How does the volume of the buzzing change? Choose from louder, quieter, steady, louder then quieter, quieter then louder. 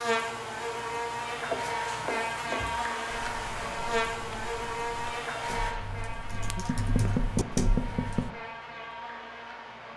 quieter.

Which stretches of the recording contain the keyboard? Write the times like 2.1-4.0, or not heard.
2.5-8.3.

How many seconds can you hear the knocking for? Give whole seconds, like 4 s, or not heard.
3 s.